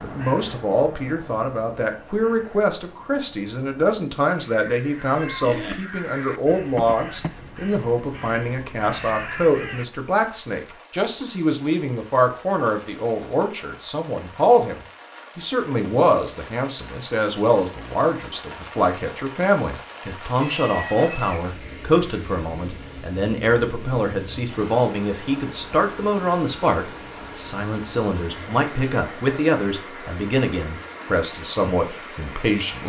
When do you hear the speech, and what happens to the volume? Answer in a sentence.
The speech can be heard from 0.0 to 32.8 s, at a steady volume.